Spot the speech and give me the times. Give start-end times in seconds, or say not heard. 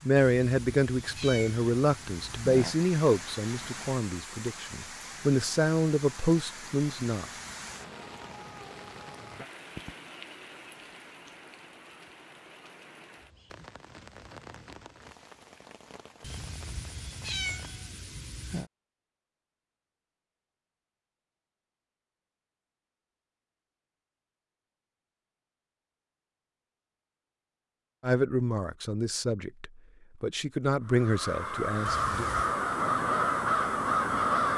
0.1-7.3, 28.0-32.2.